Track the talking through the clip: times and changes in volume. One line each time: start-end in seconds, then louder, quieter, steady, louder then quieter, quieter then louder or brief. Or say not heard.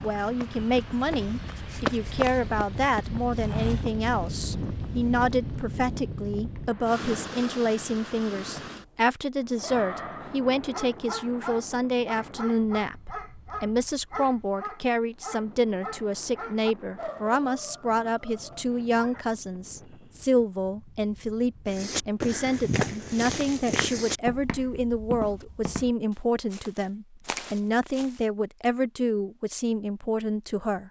0.0-30.8 steady.